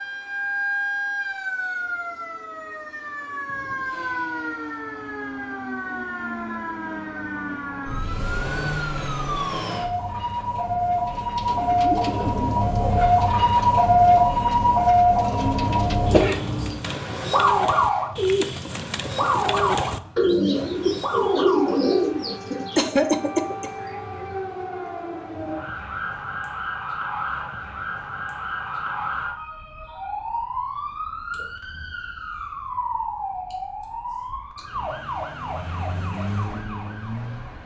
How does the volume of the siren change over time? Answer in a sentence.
The loudness of the siren goes up, then down.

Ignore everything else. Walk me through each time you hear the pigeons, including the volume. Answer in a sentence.
You can hear the pigeons from 11.1 to 22.8 s, getting louder.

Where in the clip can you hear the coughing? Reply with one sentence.
The coughing can be heard from 15.6 to 16.8 s and from 22.8 to 23.7 s.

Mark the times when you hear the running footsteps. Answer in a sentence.
You can't hear the running footsteps here.